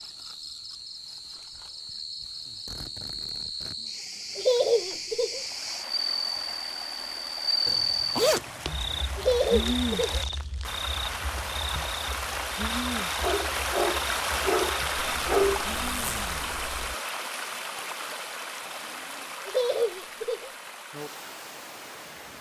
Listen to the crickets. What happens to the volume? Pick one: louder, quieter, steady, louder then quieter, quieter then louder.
louder then quieter.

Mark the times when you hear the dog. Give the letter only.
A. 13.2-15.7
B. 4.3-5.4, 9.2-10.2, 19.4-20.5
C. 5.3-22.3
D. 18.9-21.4
A.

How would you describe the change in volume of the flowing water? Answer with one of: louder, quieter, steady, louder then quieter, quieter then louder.
louder then quieter.